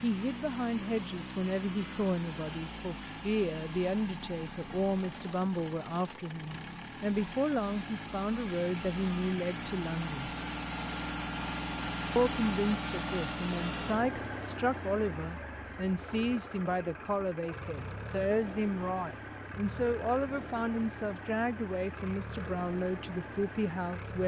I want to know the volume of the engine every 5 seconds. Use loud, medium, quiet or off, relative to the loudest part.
medium, medium, loud, medium, medium.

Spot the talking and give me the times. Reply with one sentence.
The talking can be heard from 0.0 to 10.3 s and from 12.2 to 24.2 s.